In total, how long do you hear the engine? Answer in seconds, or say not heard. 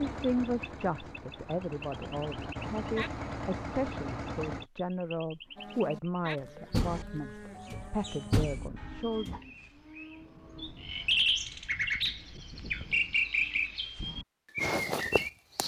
5 s.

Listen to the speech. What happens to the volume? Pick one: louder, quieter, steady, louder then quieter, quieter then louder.
steady.